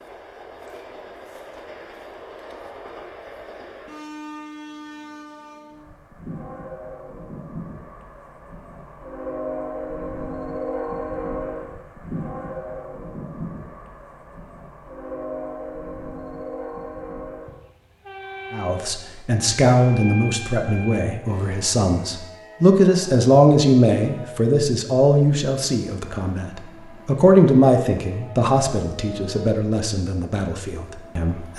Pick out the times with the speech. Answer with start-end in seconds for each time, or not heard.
18.5-31.5.